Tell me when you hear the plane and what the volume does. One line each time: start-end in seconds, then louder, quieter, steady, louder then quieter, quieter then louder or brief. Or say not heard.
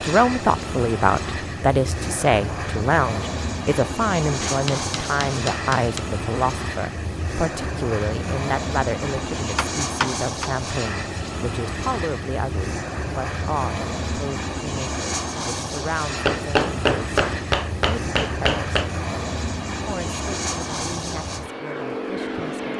0.0-22.7 steady.